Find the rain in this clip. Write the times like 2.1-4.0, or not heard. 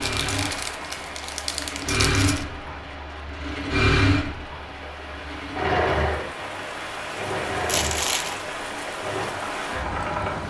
0.0-10.4.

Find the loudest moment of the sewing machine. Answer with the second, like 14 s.
4 s.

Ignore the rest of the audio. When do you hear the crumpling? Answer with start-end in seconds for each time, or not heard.
0.0-2.5, 7.7-8.3.